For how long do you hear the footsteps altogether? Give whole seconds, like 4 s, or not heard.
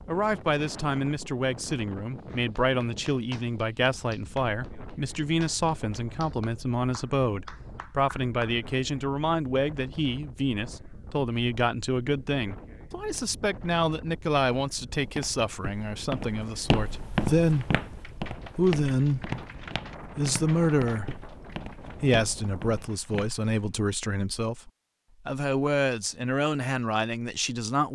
8 s.